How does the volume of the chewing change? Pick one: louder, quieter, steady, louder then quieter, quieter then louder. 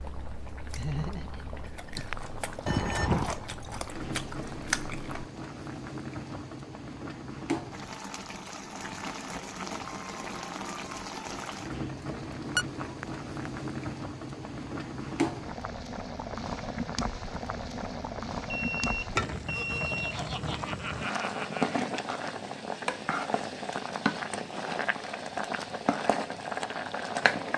louder.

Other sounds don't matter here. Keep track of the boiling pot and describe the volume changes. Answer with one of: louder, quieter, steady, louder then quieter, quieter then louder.
louder.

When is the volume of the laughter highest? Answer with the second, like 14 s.
1 s.